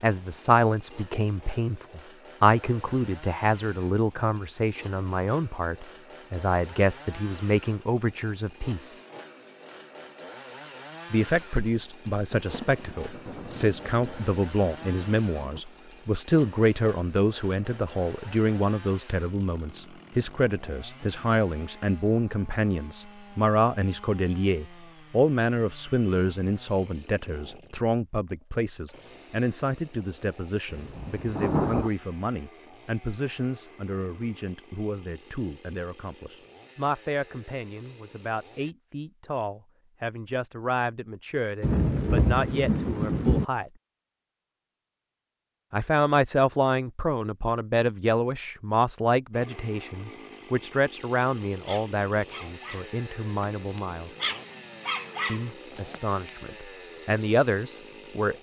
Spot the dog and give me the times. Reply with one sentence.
You can hear the dog from 51.5 to 56.5 s.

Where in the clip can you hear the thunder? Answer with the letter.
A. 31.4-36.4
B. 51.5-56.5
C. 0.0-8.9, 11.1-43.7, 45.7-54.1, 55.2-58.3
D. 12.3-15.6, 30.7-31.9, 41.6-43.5
D.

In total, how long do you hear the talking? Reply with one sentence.
You can hear the talking for 53 seconds altogether.